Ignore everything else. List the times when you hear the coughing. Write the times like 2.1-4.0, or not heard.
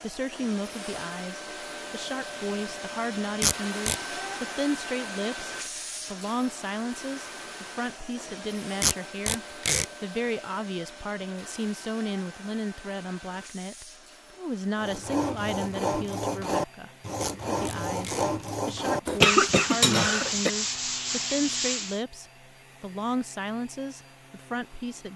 19.1-20.5.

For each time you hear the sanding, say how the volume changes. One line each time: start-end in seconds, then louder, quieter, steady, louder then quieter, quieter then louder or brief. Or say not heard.
14.8-22.0 steady.